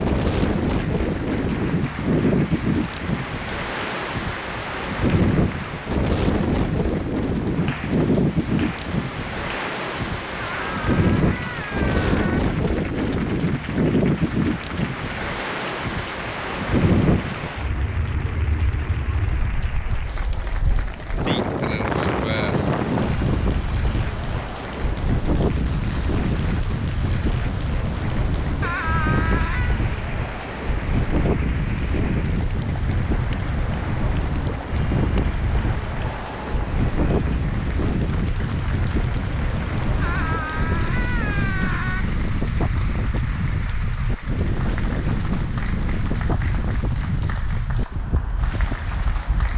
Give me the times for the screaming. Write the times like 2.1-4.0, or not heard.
10.4-12.4, 28.6-29.8, 40.0-42.0.